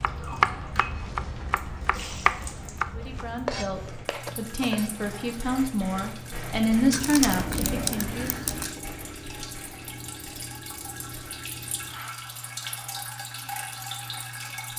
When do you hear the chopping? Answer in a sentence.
The chopping can be heard from 0.0 to 5.0 s.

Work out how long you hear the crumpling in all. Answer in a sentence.
The crumpling can be heard for 2 seconds in total.